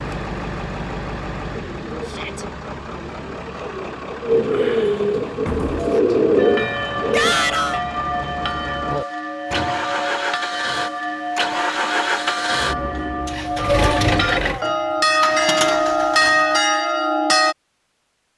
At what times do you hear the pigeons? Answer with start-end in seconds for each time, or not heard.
1.5-7.3.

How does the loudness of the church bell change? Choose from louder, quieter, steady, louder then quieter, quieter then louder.
louder.